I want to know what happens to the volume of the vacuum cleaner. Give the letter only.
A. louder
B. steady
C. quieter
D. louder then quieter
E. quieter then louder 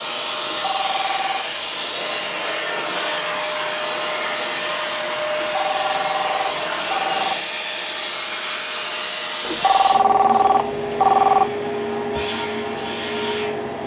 B.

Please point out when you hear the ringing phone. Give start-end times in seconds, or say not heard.
0.4-1.5, 5.3-7.3, 9.4-11.4.